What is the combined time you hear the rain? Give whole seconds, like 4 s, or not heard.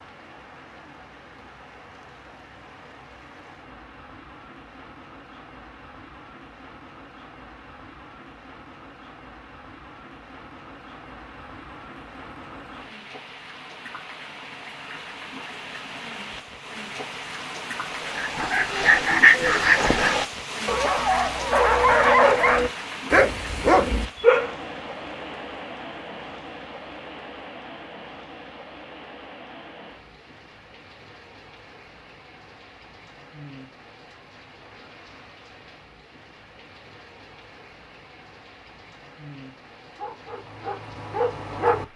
42 s.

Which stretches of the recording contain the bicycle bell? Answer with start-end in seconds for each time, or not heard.
not heard.